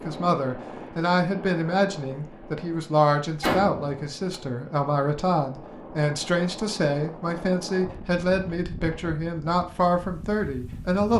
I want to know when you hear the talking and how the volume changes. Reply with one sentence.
The talking can be heard from 0.0 to 11.1 s, at a steady volume.